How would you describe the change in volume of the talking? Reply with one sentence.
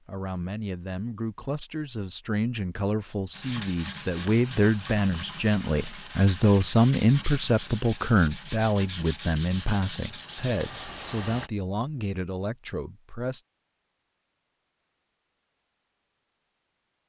The loudness of the talking goes up, then down.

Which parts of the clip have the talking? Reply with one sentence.
The talking can be heard from 0.1 to 13.4 s.